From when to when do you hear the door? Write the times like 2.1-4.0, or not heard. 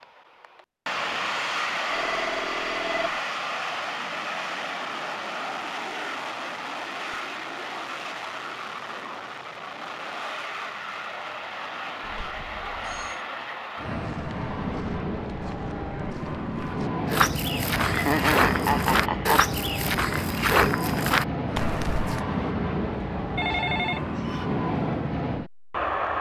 not heard.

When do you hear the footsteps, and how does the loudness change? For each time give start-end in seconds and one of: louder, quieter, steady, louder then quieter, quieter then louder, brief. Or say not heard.
13.9-22.2 louder.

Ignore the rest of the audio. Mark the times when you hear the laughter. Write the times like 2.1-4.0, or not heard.
17.8-19.4.